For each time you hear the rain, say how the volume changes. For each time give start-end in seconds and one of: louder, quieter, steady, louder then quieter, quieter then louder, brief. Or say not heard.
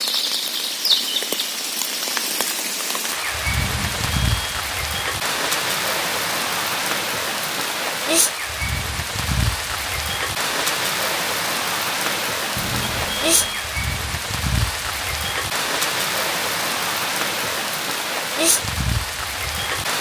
0.0-19.9 steady.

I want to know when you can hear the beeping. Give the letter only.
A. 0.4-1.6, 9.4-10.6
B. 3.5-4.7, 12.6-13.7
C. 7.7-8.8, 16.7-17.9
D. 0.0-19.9
B.